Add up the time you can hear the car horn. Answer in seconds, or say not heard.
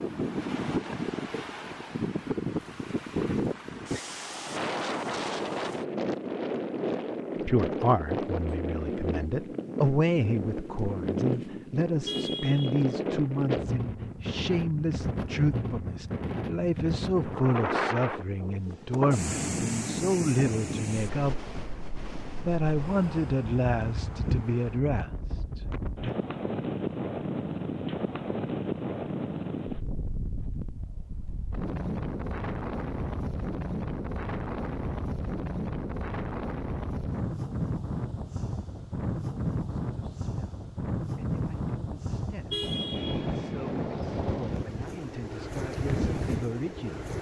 2 s.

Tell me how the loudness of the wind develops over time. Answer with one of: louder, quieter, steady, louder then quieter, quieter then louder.
steady.